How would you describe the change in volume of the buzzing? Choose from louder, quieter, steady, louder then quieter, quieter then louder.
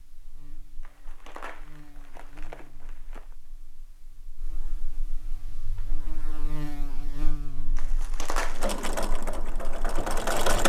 louder then quieter.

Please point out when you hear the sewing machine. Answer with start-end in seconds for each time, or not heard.
8.5-10.6.